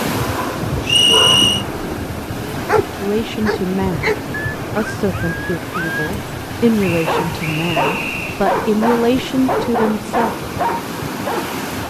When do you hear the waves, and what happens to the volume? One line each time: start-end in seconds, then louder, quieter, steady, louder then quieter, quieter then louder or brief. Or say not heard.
0.0-11.8 steady.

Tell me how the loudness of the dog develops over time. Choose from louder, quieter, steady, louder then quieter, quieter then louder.
steady.